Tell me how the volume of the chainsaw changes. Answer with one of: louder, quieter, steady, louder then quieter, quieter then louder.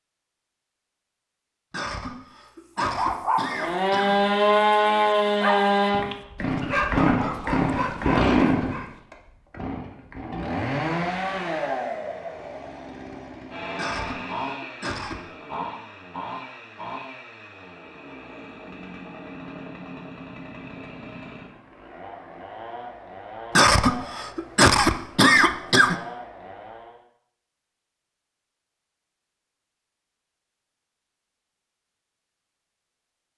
quieter.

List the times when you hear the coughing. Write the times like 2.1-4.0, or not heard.
1.7-4.3, 13.8-15.2, 23.6-25.9.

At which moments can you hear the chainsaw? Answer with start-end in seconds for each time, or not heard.
3.5-27.1.